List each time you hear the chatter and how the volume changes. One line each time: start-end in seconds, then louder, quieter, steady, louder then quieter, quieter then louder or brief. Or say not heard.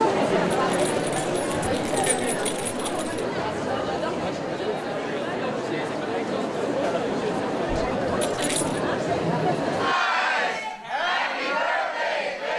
0.0-12.5 steady.